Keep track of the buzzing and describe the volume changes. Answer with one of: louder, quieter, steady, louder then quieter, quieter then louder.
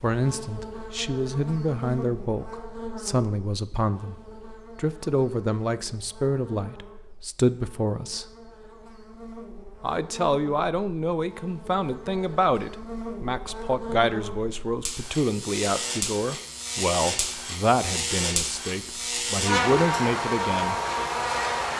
quieter then louder.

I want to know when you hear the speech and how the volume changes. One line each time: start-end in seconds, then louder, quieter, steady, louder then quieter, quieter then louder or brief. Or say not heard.
0.0-8.3 steady
9.8-20.8 steady.